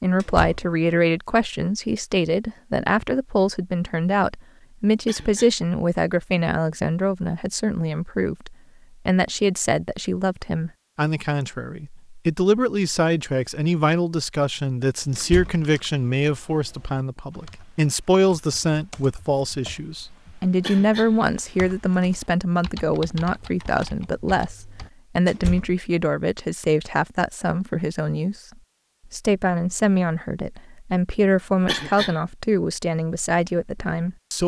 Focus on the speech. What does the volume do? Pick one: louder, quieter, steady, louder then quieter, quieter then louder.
steady.